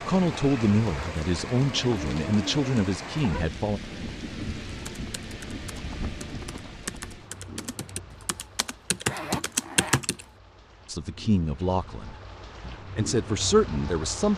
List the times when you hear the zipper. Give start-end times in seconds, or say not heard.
9.1-10.2.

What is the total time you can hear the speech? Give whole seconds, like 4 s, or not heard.
7 s.